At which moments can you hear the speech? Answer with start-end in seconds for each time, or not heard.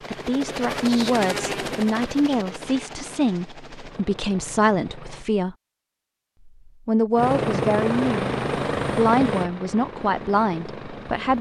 0.1-5.5, 6.7-11.3.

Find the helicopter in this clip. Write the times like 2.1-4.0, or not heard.
0.0-5.3, 7.2-11.3.